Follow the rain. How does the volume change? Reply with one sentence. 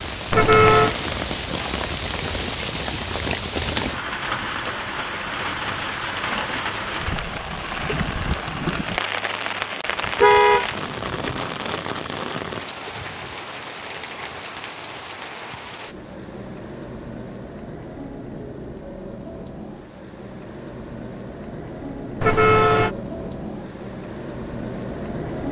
The loudness of the rain goes down.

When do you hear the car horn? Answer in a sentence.
You can hear the car horn from 0.3 to 0.9 s, from 10.2 to 11.4 s and from 22.2 to 22.9 s.